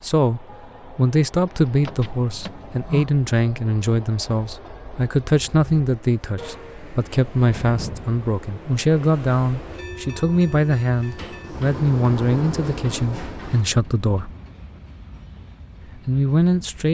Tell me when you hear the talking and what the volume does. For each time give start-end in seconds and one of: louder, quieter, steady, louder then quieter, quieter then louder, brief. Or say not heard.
0.0-14.3 steady
16.1-16.8 brief.